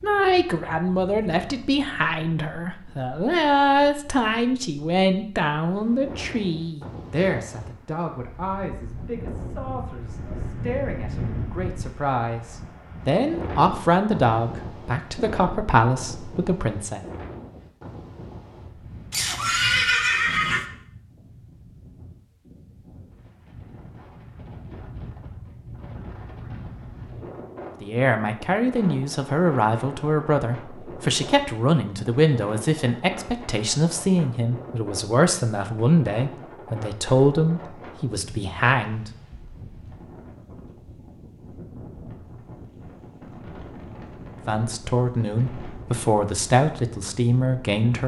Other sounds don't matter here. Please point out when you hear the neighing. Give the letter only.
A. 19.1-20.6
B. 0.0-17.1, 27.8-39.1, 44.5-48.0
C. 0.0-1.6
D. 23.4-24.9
A.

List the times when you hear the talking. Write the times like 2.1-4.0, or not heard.
0.0-17.1, 27.8-39.1, 44.5-48.0.